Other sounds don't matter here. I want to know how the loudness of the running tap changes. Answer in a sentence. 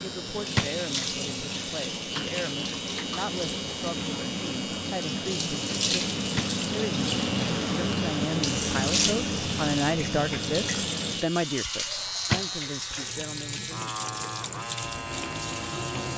The loudness of the running tap goes up, then down.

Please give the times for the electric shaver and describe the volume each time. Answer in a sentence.
The electric shaver can be heard from 0.0 to 16.1 s, at a steady volume.